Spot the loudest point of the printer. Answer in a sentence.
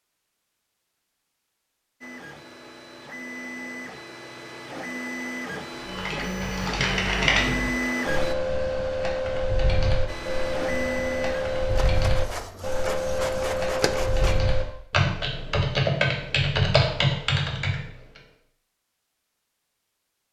The volume of the printer peaks at 8 seconds.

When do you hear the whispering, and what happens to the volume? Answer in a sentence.
You can't hear the whispering here.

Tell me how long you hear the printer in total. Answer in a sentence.
You can hear the printer for 11 seconds altogether.